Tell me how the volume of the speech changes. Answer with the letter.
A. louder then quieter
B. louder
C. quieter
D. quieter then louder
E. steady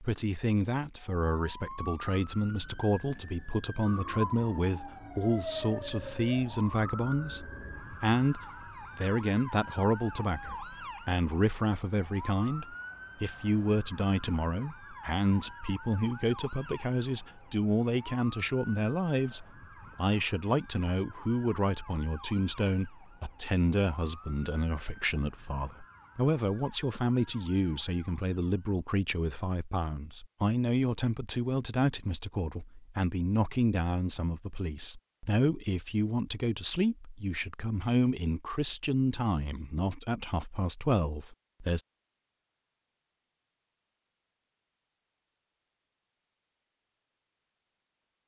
E.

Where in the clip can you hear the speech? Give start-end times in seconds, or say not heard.
0.0-41.8.